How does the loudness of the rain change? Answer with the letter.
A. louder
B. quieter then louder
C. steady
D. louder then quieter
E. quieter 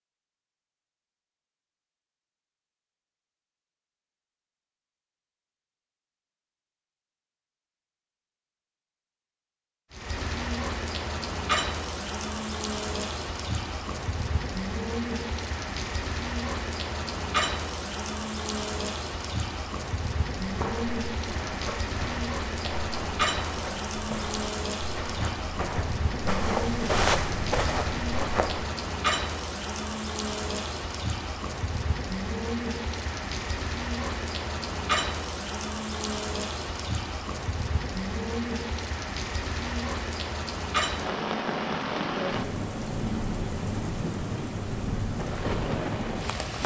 C.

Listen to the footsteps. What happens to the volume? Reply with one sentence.
The volume of the footsteps goes up.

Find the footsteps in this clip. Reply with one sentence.
You can hear the footsteps from 20.4 to 28.7 s.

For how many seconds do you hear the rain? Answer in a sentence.
You can hear the rain for 37 seconds altogether.